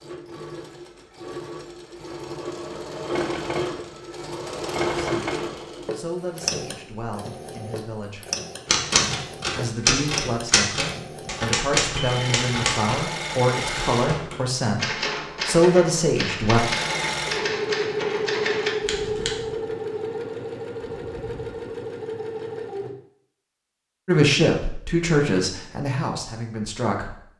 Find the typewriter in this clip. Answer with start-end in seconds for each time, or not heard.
8.7-19.3.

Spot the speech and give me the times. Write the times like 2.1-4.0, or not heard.
5.0-8.2, 9.5-16.6, 24.1-27.1.